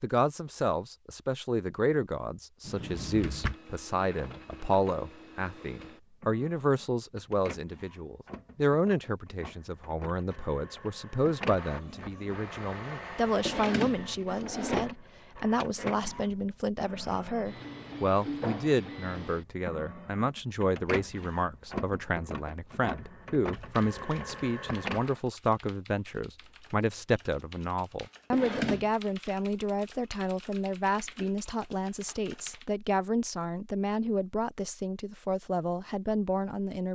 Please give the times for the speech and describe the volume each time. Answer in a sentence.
The speech can be heard from 0.0 to 36.9 s, at a steady volume.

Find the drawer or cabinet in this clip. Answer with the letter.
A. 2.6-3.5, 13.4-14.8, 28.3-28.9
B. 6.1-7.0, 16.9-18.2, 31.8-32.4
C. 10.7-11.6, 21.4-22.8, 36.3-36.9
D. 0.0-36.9
A.